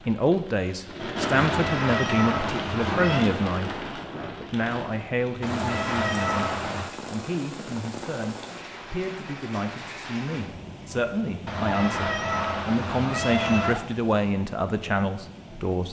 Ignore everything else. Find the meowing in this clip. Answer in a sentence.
You can hear the meowing from 1.3 to 3.3 s, from 5.4 to 7.0 s and from 11.4 to 13.8 s.